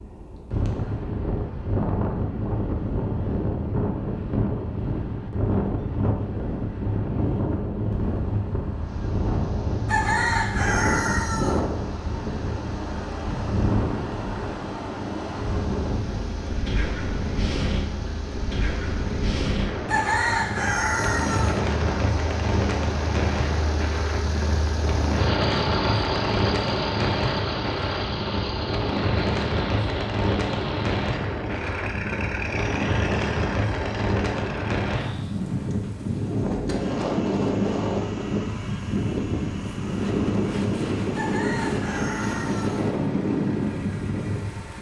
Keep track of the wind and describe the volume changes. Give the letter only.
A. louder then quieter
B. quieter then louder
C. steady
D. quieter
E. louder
C.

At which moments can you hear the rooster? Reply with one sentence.
You can hear the rooster from 9.8 to 11.6 s, from 19.9 to 21.6 s and from 41.1 to 42.9 s.